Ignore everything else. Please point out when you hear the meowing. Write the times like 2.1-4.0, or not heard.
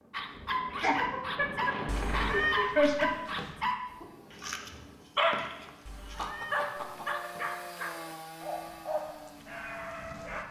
1.9-3.5, 5.8-7.8.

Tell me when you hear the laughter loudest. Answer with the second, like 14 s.
3 s.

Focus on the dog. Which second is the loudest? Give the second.
5 s.